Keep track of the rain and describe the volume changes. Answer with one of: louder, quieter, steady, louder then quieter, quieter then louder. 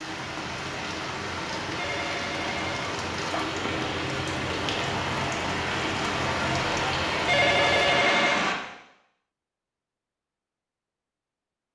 louder.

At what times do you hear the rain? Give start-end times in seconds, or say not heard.
0.0-8.6.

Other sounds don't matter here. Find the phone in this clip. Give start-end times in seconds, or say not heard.
1.8-3.6, 7.2-8.5.